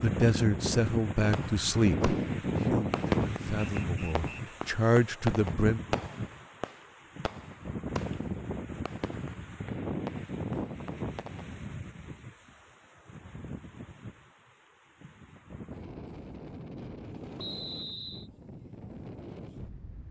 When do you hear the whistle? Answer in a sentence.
You can hear the whistle from 3.8 to 4.6 s and from 17.4 to 18.3 s.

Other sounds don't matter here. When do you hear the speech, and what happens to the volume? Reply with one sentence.
The speech can be heard from 0.0 to 5.8 s, getting quieter then louder.